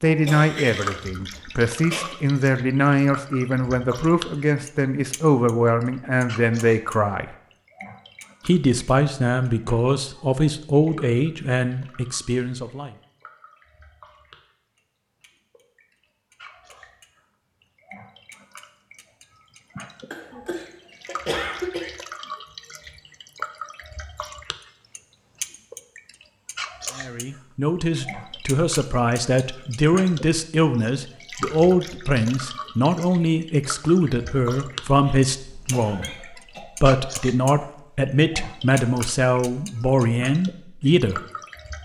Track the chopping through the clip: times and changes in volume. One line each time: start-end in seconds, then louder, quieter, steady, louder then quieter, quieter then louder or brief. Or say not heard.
not heard.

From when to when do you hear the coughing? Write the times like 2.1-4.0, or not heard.
0.2-2.1, 20.1-21.9, 34.9-36.6.